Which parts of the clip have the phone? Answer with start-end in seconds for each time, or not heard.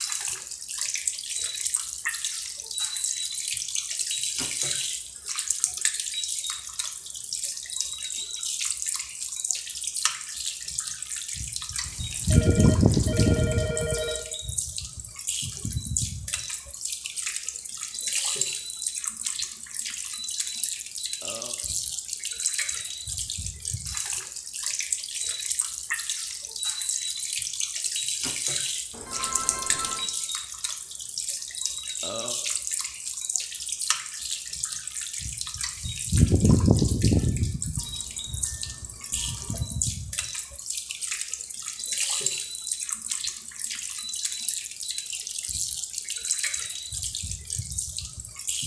11.8-14.2, 28.9-30.1, 37.8-39.6.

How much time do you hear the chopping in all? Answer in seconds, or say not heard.
not heard.